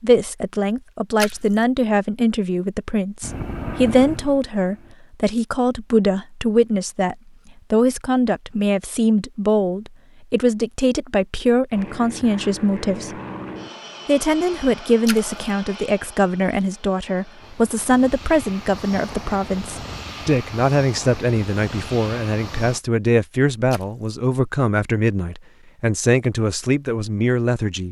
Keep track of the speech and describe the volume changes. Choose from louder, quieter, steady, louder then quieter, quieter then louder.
steady.